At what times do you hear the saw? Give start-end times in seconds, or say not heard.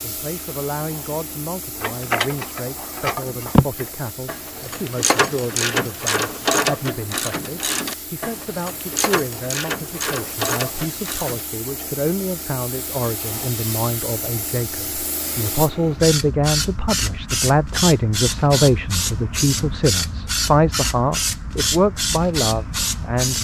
not heard.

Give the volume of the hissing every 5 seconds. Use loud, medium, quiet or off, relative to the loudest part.
quiet, quiet, medium, loud, loud.